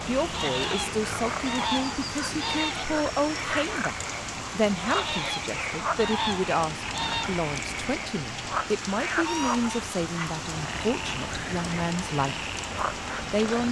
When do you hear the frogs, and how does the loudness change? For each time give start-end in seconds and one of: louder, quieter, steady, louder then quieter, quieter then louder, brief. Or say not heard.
0.0-13.6 steady.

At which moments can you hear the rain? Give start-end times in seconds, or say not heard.
0.0-13.6.